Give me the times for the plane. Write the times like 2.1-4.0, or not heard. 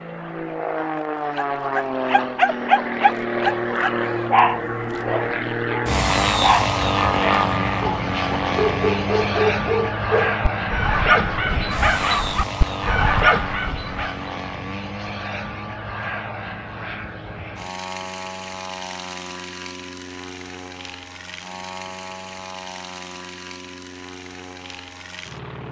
0.0-25.6.